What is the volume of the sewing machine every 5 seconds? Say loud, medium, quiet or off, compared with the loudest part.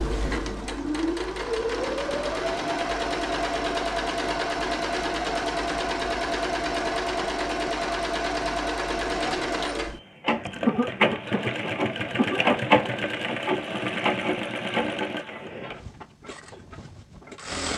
loud, loud, loud, medium.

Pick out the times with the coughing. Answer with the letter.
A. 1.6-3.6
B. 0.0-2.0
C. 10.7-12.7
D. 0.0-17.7
C.